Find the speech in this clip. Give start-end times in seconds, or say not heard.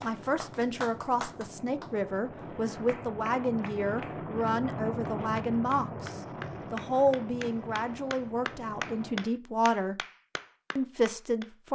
0.0-9.9, 10.8-11.7.